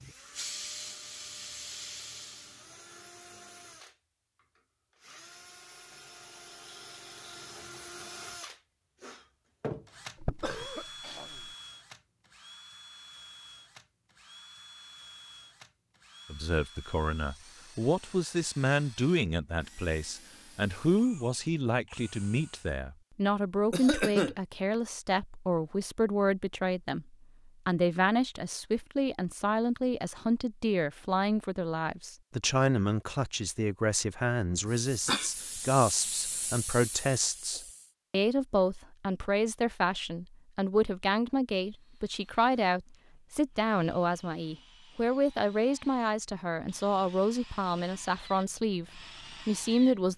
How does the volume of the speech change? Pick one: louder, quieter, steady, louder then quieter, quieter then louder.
steady.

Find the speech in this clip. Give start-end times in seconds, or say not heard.
16.3-50.1.